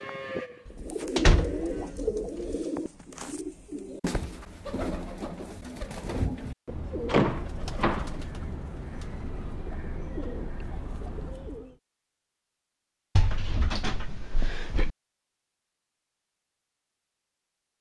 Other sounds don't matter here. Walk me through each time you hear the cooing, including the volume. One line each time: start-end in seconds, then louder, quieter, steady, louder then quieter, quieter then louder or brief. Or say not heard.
0.8-11.8 quieter.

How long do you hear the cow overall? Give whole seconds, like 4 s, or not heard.
2 s.